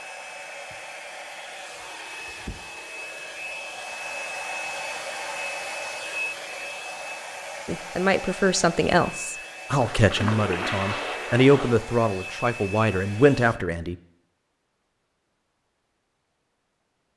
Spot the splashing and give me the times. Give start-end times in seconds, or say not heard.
9.8-11.8.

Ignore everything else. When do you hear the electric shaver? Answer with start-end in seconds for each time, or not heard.
not heard.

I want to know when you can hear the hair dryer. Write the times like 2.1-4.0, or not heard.
0.0-13.6.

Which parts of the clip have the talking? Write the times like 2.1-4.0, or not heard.
7.7-13.9.